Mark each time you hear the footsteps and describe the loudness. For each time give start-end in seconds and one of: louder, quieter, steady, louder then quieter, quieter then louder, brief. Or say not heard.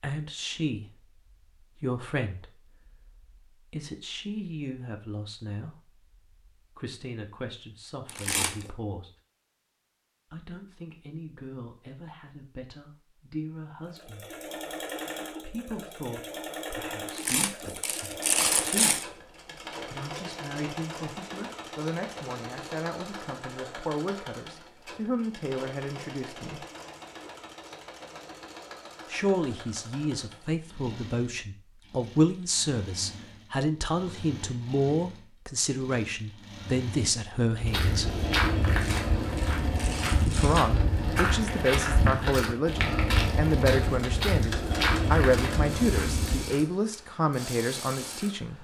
37.5-46.6 steady.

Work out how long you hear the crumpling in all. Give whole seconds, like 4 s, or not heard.
5 s.